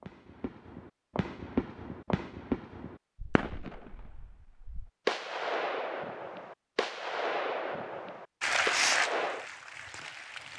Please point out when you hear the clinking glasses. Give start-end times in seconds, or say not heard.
not heard.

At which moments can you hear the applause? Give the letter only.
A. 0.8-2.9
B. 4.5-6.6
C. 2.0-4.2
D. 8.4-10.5
D.